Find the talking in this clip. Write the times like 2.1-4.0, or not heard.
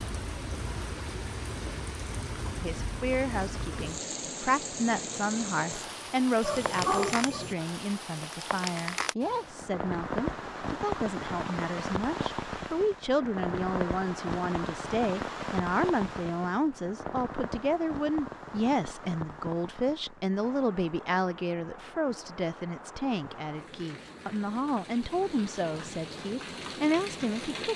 2.5-27.7.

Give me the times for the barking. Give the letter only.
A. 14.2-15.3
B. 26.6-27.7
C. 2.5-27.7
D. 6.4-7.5
D.